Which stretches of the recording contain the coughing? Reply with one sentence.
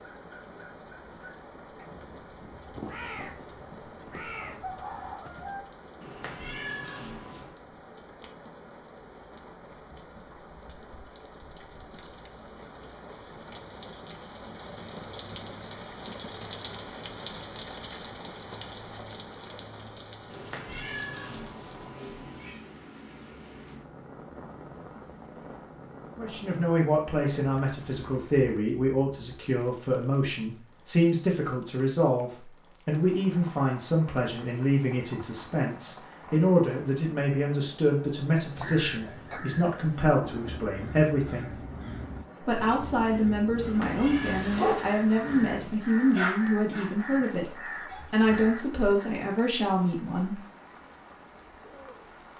You can't hear the coughing here.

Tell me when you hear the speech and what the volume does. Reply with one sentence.
You can hear the speech from 26.1 to 41.5 s, at a steady volume; and from 42.4 to 50.4 s, at a steady volume.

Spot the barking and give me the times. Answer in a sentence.
You can hear the barking from 44.0 to 48.6 s.